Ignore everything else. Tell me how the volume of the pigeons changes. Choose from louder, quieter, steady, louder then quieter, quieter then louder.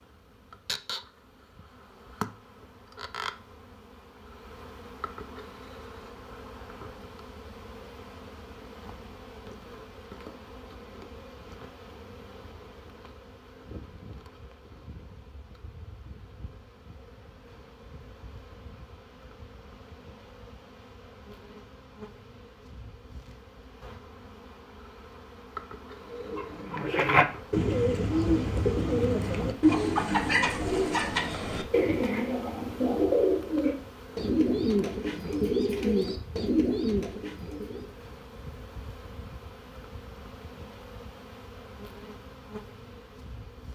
steady.